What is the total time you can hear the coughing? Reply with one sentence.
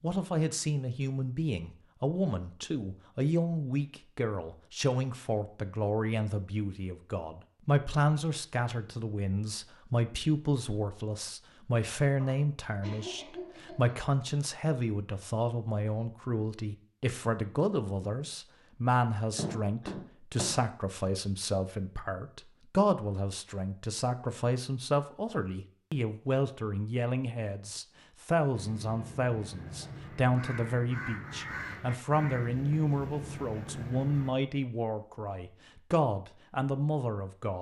You can hear the coughing for 3 seconds altogether.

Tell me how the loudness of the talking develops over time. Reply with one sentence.
The loudness of the talking stays about the same.